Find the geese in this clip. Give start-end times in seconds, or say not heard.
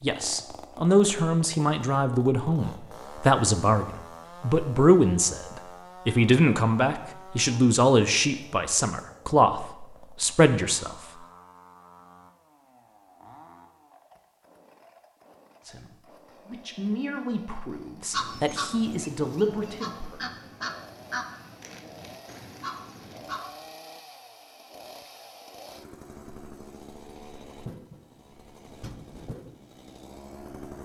18.1-23.4.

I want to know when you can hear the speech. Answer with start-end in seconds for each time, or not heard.
0.0-10.9, 15.6-20.2.